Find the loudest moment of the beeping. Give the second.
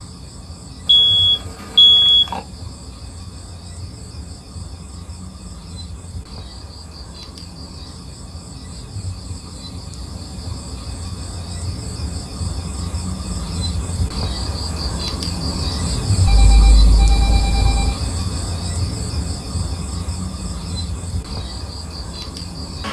2 s.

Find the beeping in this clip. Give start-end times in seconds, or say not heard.
0.8-2.4, 16.2-18.0.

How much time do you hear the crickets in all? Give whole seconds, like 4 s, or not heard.
23 s.